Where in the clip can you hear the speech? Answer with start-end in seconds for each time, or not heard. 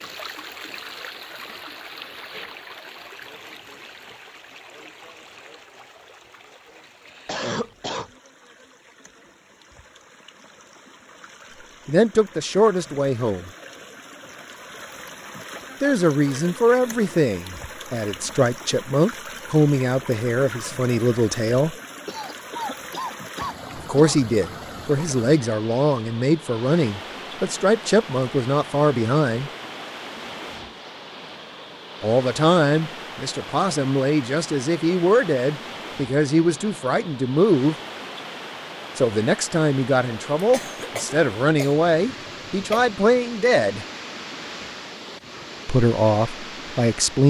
11.8-13.5, 15.8-21.8, 23.8-29.5, 32.0-37.8, 39.0-43.9, 45.6-47.2.